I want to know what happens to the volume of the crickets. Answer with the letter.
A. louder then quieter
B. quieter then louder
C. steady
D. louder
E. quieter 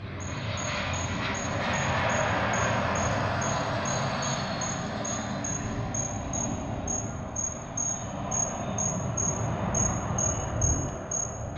D.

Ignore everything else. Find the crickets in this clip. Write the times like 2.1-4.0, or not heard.
0.2-11.3.